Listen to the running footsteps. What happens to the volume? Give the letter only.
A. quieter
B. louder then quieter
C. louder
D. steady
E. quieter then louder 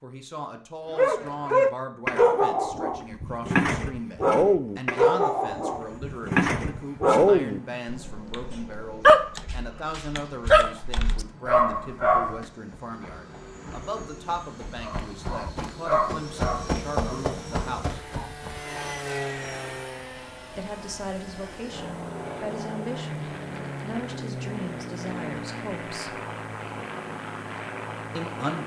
B.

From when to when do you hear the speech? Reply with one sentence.
You can hear the speech from 0.0 to 18.0 s, from 20.6 to 26.2 s and from 28.1 to 28.6 s.